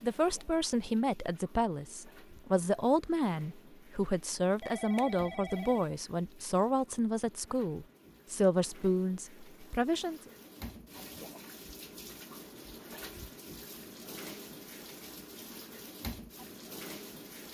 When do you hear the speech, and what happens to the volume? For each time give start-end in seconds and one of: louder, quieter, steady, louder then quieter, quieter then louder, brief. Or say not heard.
0.0-10.2 steady.